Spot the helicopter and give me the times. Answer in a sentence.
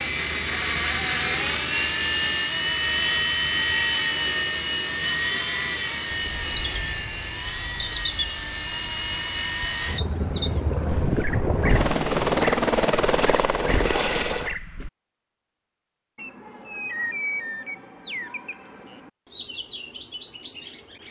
The helicopter can be heard from 0.0 to 14.6 s.